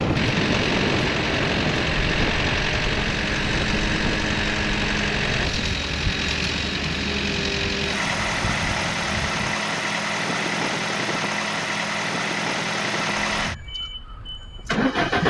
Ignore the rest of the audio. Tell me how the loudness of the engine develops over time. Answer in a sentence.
The loudness of the engine stays about the same.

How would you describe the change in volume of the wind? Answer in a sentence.
The volume of the wind goes down.